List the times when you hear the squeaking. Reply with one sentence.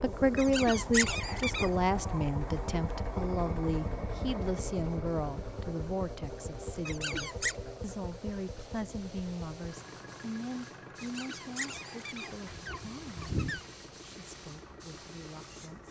The squeaking can be heard from 0.3 to 1.8 s, from 6.8 to 7.5 s and from 10.9 to 13.7 s.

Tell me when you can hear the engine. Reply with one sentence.
The engine can be heard from 0.0 to 15.8 s.